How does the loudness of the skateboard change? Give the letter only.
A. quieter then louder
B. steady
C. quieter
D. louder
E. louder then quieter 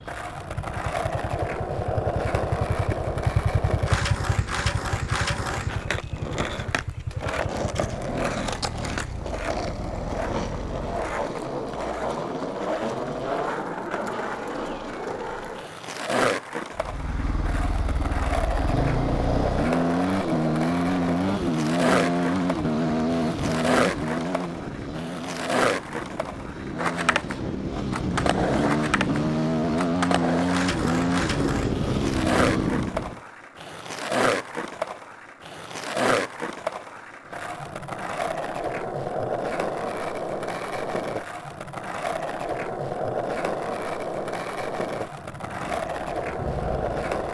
B.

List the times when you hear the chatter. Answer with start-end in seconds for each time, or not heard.
not heard.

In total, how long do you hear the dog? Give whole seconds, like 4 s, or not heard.
not heard.